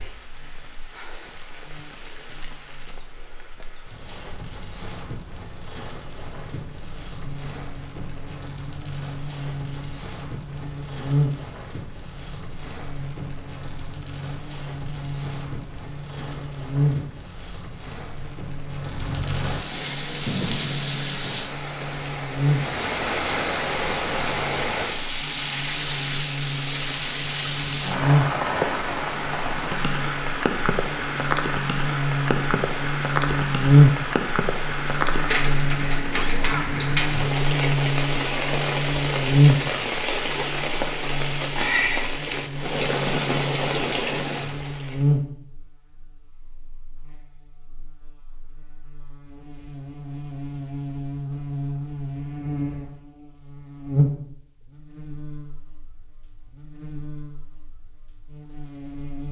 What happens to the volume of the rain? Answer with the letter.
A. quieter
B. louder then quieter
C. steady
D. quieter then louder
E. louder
E.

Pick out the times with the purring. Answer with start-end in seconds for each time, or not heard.
not heard.